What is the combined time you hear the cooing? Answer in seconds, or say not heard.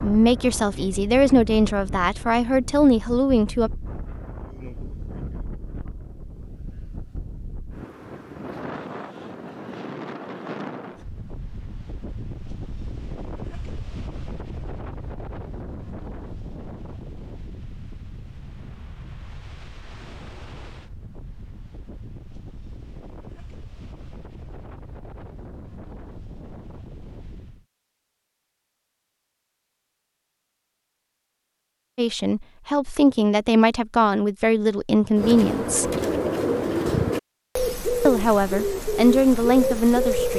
5 s.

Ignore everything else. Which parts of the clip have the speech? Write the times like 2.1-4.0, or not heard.
0.0-3.7, 31.9-35.9, 38.0-40.3.